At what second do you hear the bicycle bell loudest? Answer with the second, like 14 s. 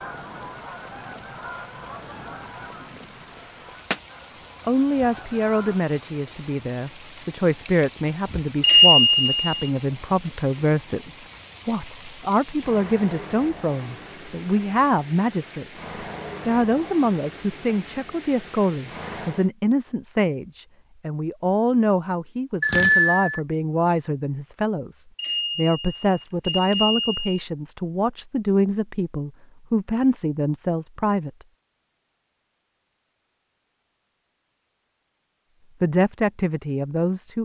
9 s.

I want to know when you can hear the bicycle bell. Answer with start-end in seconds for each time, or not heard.
8.6-9.4, 22.6-23.4, 25.1-27.4.